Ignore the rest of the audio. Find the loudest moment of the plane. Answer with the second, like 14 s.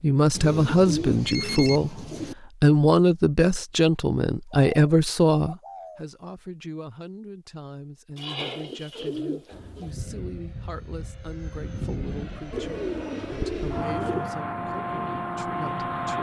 16 s.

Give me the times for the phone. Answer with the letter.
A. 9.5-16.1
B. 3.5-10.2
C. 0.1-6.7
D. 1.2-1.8
D.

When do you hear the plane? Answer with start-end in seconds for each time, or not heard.
9.5-16.1.